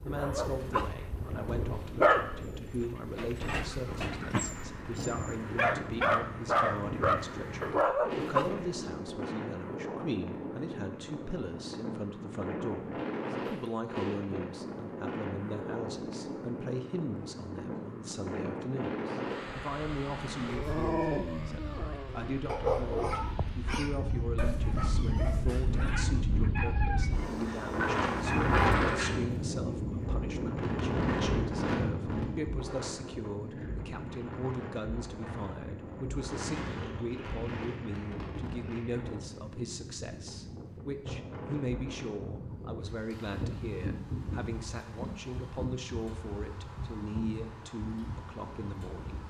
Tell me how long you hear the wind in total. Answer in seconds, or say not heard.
49 s.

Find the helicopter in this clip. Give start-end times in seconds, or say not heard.
not heard.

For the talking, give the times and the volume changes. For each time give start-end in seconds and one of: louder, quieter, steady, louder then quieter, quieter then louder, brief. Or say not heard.
0.0-49.2 steady.